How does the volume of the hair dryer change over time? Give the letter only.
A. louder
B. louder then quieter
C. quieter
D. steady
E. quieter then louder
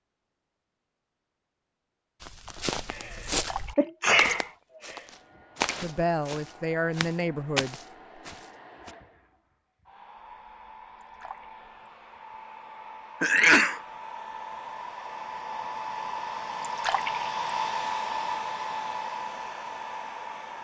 A.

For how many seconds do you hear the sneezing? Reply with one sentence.
The sneezing can be heard for 2 seconds in total.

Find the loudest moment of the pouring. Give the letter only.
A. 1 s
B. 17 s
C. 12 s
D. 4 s
B.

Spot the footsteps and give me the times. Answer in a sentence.
The footsteps can be heard from 2.2 to 8.9 s.